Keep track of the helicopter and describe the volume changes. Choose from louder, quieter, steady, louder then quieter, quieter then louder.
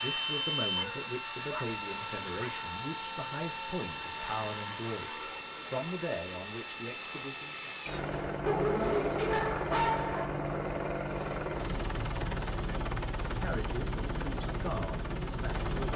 steady.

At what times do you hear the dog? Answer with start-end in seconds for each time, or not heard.
0.8-2.6, 8.4-10.3.